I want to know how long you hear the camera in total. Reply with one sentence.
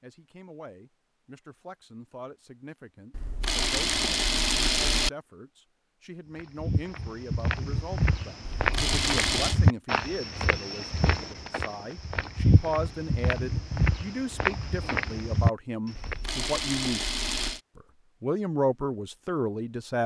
The camera can be heard for 5 seconds in total.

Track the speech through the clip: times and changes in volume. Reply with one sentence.
You can hear the speech from 0.0 to 20.0 s, getting louder.